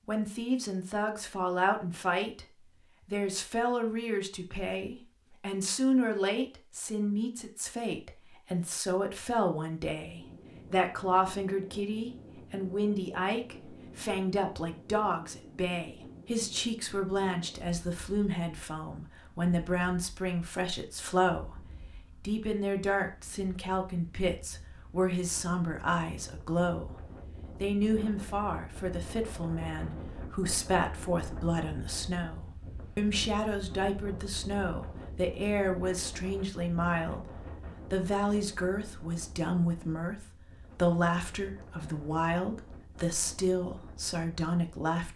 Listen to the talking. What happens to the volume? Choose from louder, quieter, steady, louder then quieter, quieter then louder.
steady.